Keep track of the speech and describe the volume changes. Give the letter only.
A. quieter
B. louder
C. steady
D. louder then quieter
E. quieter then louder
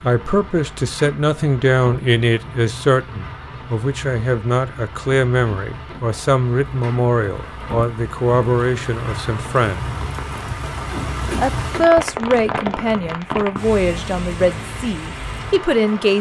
C.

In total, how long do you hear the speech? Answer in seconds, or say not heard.
15 s.